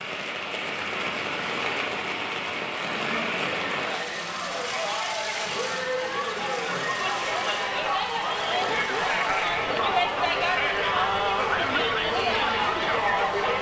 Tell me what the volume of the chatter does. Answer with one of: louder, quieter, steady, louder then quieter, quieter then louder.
louder.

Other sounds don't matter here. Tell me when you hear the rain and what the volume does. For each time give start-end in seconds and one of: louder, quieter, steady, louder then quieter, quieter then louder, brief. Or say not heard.
0.0-13.5 quieter.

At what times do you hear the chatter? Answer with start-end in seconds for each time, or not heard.
2.9-13.5.